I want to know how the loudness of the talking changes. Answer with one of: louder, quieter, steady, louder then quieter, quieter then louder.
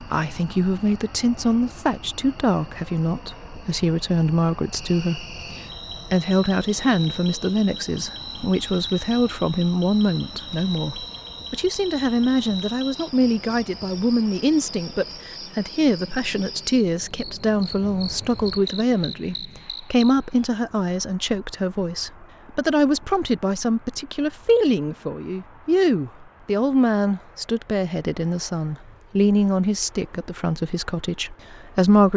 steady.